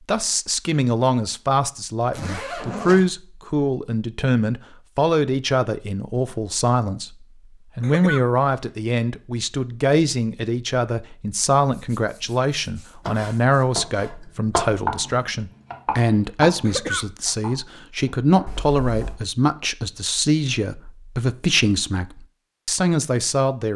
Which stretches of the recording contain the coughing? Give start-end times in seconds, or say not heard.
7.8-8.2, 16.6-17.1.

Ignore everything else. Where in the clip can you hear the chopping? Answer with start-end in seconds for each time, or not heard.
13.1-19.1.